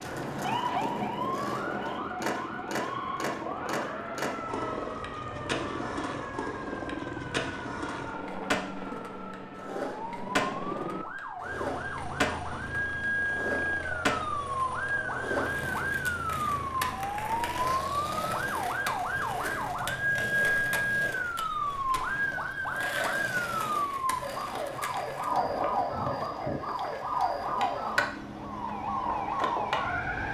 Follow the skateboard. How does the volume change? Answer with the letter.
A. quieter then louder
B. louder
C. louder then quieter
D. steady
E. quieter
D.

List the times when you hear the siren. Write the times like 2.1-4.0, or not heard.
0.1-30.2.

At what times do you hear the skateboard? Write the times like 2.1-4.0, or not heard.
0.0-30.1.